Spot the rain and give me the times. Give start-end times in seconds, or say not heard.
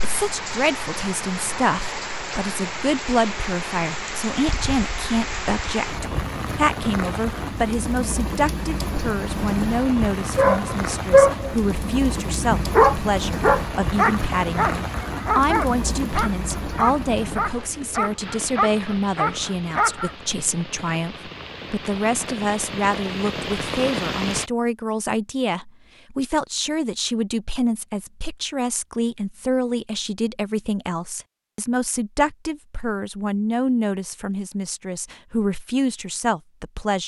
0.0-24.5.